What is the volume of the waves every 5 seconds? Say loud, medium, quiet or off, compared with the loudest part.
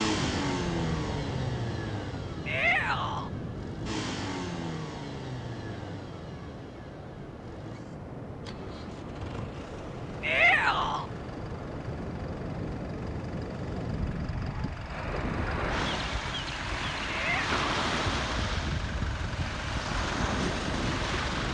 medium, medium, medium, loud, loud.